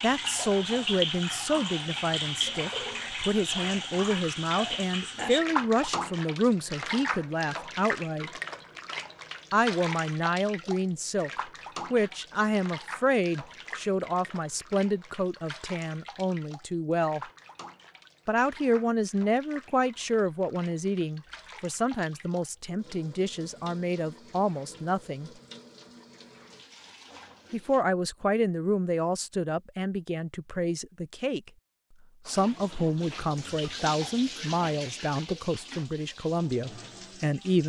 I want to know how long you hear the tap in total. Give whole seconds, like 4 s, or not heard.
33 s.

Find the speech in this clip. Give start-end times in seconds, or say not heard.
0.0-8.3, 9.5-17.2, 18.2-25.3, 27.5-31.5, 32.2-37.6.